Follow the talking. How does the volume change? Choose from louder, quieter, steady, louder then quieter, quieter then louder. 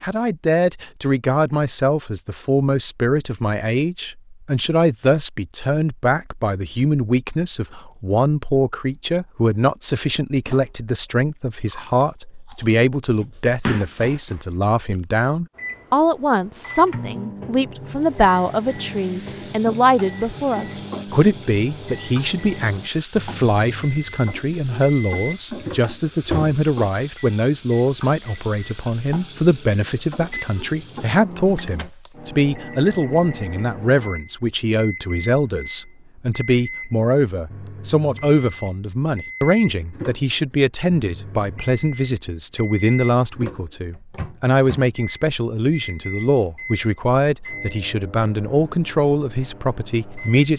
steady.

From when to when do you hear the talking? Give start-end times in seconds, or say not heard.
0.0-50.5.